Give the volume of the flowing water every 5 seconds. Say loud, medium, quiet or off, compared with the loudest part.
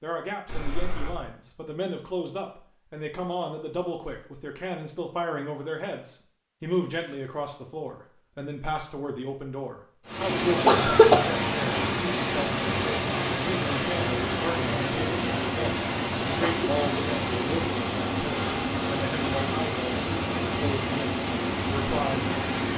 off, off, loud, loud, loud.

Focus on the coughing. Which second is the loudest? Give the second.
11 s.